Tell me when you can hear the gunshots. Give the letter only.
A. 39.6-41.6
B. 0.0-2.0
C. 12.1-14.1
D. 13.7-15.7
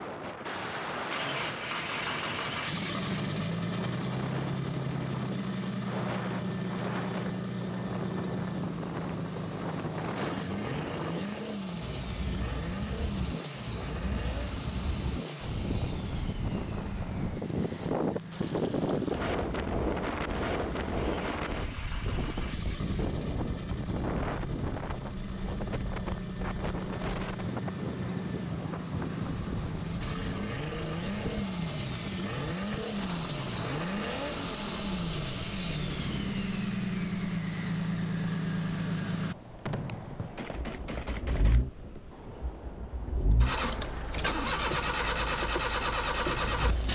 A.